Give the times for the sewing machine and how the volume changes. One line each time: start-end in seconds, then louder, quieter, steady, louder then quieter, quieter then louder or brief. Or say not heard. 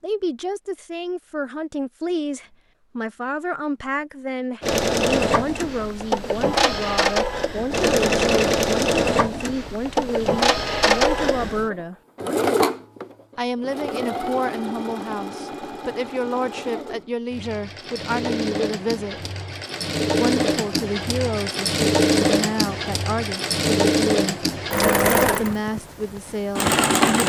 4.6-27.2 quieter then louder.